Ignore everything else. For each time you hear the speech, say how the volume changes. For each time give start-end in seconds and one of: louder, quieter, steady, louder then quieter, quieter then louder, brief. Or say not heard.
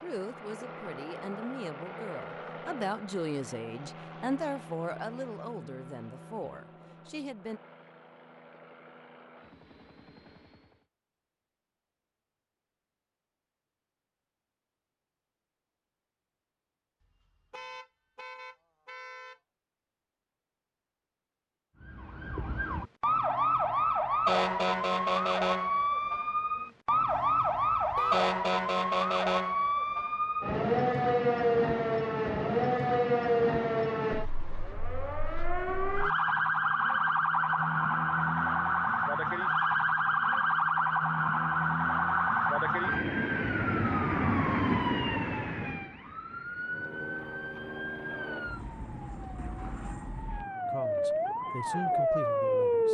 0.0-7.6 louder then quieter
50.6-52.8 brief.